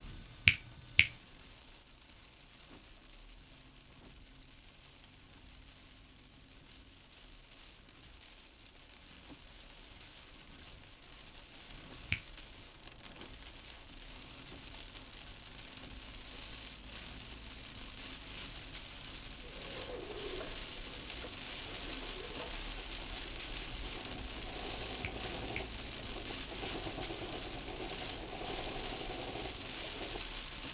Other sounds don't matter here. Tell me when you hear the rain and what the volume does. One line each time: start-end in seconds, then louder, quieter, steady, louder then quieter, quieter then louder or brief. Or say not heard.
0.0-30.7 louder.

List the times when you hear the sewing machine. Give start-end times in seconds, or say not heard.
19.4-30.7.